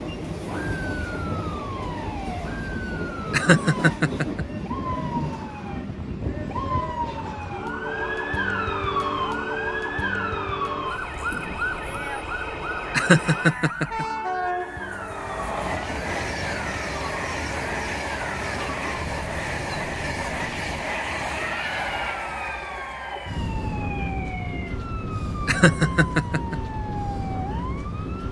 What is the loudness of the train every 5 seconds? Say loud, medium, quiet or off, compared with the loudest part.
loud, medium, loud, loud, loud, loud.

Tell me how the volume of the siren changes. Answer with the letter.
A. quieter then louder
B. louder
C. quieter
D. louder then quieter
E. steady
D.